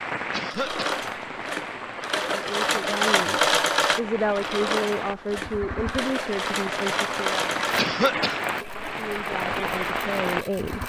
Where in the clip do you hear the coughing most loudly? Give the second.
8 s.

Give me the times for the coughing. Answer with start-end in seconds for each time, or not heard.
0.3-1.1, 7.8-8.4.